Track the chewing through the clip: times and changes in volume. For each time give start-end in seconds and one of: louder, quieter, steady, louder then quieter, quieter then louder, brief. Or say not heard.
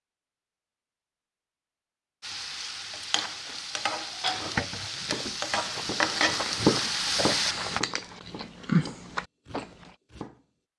3.5-9.9 quieter then louder.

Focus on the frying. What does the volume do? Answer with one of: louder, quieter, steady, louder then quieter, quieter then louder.
louder.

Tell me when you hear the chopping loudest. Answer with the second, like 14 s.
7 s.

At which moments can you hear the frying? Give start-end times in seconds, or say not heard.
2.2-7.8.